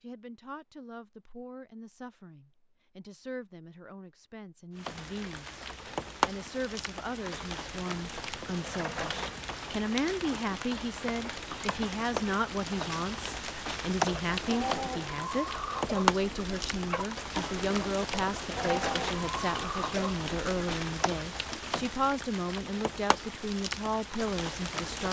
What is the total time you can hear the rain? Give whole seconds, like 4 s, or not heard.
20 s.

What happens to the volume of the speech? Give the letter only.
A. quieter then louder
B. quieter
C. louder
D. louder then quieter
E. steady
C.